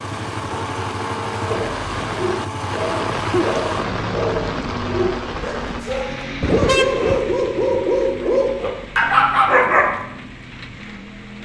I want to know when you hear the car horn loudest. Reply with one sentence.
The loudest moment of the car horn is at 7 seconds.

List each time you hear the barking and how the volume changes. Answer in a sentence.
The barking can be heard from 1.4 to 9.8 s, getting louder.